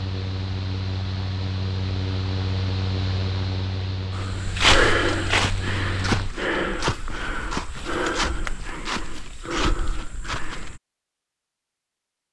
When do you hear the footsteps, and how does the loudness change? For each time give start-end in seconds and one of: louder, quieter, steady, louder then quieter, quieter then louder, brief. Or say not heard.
4.1-10.8 quieter.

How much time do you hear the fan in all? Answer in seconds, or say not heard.
6 s.